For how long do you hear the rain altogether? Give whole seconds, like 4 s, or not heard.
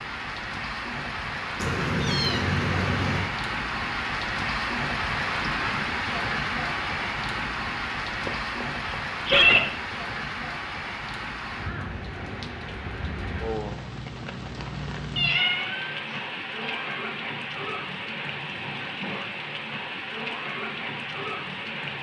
22 s.